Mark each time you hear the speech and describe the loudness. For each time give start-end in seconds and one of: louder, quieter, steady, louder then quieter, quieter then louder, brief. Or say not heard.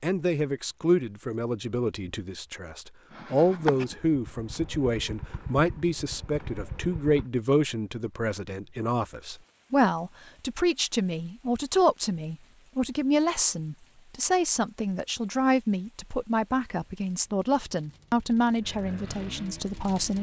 0.0-20.1 steady.